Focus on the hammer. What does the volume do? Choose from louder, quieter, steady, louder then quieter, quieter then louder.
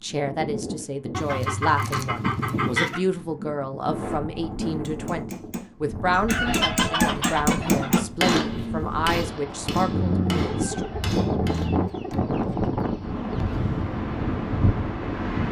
louder then quieter.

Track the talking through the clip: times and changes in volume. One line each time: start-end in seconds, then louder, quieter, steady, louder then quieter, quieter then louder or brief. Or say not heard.
0.0-10.8 steady.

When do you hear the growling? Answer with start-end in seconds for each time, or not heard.
4.2-4.7, 9.9-11.9.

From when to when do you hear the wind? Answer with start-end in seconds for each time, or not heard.
0.0-15.4.